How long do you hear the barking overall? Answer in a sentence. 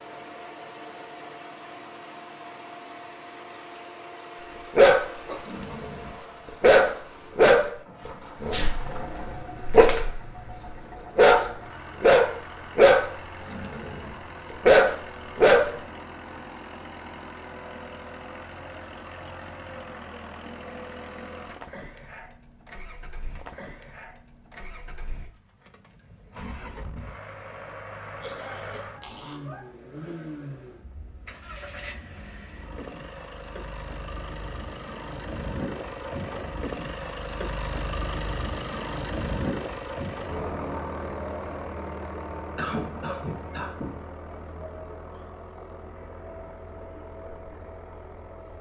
The barking can be heard for 11 seconds in total.